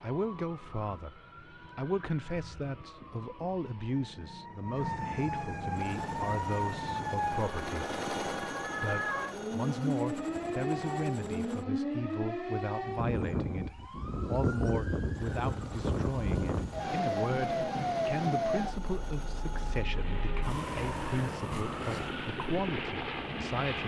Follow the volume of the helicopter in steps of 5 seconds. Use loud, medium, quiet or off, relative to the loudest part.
off, loud, medium, medium, loud.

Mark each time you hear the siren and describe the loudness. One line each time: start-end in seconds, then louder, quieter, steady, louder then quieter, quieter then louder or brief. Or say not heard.
0.0-23.8 louder then quieter.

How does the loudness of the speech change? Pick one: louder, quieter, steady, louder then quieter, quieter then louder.
steady.